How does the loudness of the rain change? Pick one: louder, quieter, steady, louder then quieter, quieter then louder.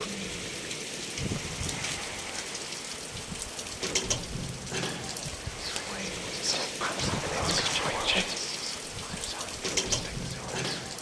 steady.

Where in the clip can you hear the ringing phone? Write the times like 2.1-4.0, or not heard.
not heard.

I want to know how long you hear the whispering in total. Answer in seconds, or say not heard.
5 s.